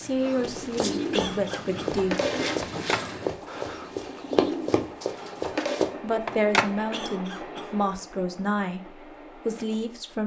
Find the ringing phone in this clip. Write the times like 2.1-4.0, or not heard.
2.6-3.0, 6.2-6.7.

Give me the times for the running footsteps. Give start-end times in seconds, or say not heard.
0.3-6.0.